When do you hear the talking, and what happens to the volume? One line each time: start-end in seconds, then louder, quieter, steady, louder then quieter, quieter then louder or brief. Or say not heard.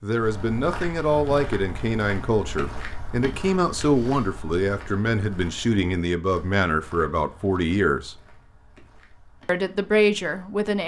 0.0-8.2 steady
9.4-10.8 brief.